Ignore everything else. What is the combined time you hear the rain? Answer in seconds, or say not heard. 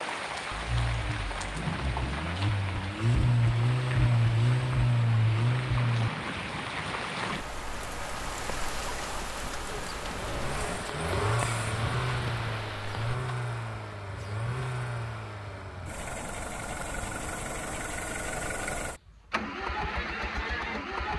13 s.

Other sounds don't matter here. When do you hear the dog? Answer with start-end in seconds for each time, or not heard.
not heard.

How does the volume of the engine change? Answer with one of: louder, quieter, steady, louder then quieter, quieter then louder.
quieter.